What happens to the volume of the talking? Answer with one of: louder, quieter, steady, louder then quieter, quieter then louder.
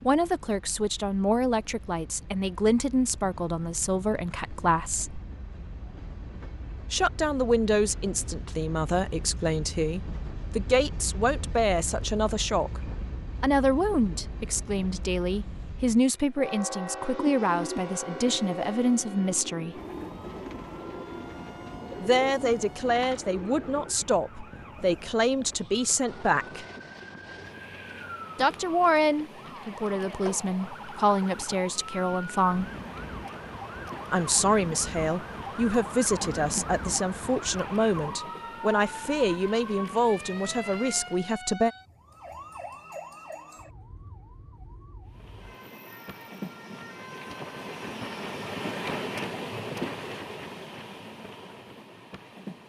steady.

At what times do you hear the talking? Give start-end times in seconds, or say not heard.
0.0-5.2, 6.9-12.8, 13.4-19.8, 22.0-26.6, 28.4-32.7, 34.1-41.7.